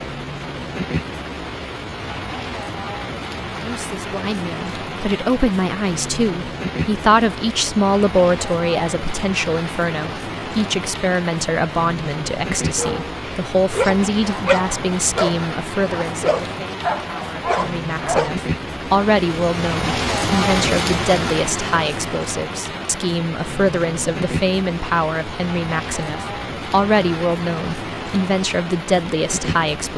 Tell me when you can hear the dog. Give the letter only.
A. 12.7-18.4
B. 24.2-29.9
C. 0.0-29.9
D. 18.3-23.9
A.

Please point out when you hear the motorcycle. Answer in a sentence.
The motorcycle can't be heard in this clip.